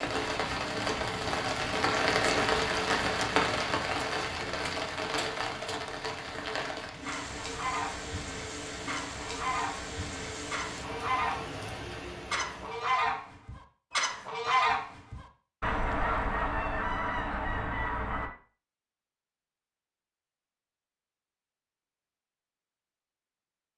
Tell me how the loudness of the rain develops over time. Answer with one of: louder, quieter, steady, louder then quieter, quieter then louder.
quieter.